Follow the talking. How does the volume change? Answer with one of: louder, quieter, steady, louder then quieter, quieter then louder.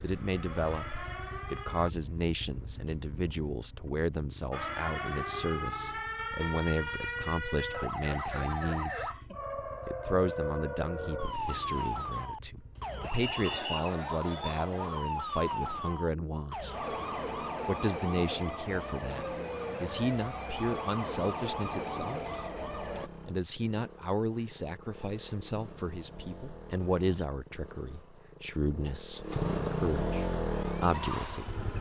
steady.